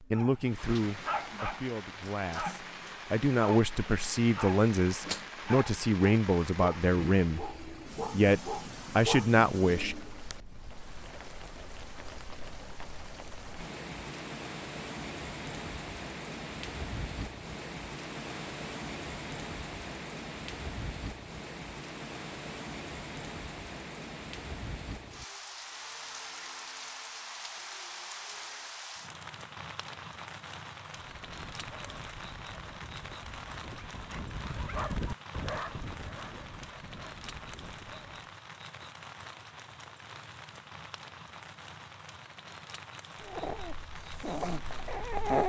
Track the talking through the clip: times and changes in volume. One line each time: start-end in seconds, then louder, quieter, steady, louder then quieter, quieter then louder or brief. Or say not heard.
0.1-10.0 louder.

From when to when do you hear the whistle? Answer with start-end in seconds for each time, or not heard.
not heard.